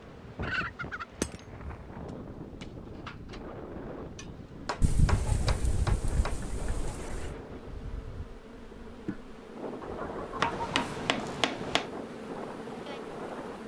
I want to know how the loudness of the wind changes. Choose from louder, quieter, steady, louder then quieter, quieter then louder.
steady.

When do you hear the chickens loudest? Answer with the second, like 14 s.
5 s.